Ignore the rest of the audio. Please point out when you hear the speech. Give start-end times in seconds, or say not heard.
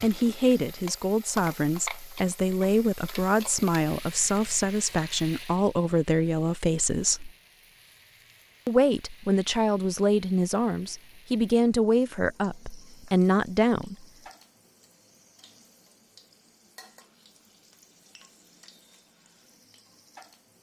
0.0-7.3, 8.7-14.1.